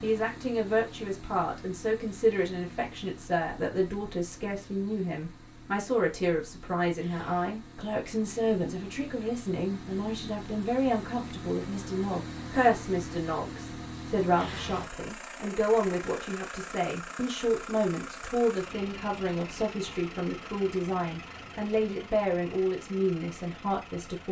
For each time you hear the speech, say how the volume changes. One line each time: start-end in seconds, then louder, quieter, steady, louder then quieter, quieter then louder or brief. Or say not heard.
0.0-24.2 steady.